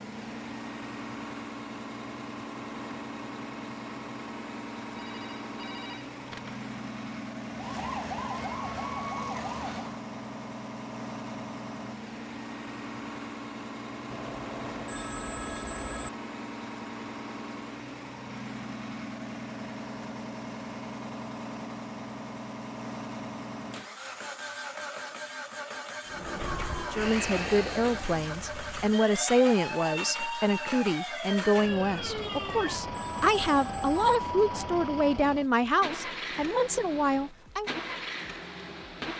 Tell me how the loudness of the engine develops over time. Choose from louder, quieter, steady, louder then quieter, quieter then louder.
steady.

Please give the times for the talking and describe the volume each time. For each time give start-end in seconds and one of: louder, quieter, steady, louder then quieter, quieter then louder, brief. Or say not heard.
26.9-37.7 steady.